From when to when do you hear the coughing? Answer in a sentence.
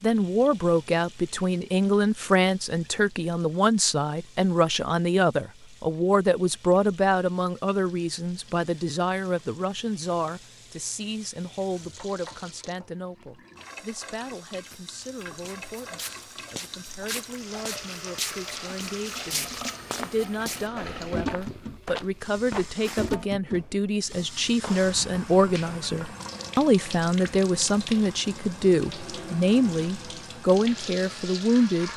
The coughing can't be heard in this clip.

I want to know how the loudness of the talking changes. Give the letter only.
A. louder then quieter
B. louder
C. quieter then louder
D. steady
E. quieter
C.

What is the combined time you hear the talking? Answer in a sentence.
The talking can be heard for 32 seconds in total.